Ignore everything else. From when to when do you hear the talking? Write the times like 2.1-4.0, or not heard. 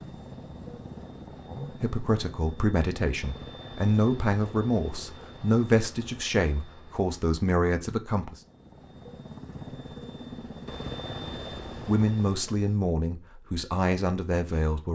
1.4-8.3, 11.8-14.9.